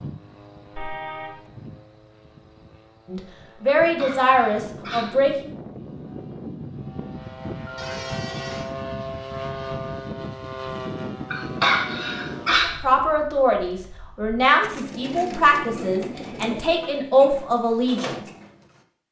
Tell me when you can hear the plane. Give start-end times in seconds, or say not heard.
0.0-12.6.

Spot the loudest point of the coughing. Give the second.
12 s.